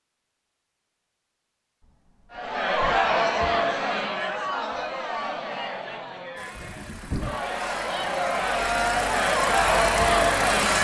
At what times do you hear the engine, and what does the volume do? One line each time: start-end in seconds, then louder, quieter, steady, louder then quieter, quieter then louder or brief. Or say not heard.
6.3-10.7 louder.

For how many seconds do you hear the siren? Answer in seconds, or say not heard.
not heard.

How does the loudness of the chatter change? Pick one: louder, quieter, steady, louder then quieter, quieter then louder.
quieter then louder.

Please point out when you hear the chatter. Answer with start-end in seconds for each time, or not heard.
2.3-10.7.